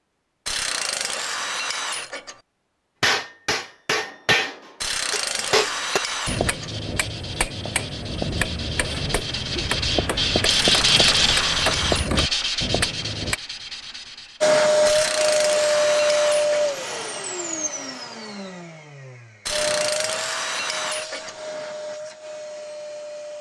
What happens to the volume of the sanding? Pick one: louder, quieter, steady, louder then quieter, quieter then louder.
louder then quieter.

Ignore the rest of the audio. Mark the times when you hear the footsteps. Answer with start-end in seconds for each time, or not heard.
not heard.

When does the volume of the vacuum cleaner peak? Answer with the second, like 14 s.
15 s.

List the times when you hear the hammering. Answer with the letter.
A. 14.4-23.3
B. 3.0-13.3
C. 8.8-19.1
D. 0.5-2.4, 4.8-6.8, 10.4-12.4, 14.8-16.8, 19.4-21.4
B.